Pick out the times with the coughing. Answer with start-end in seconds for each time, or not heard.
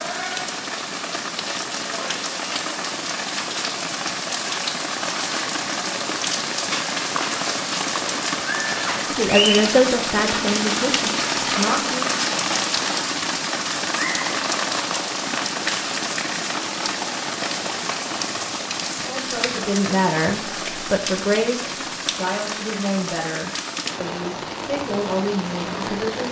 not heard.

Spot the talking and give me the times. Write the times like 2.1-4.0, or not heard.
9.0-12.0, 19.0-26.2.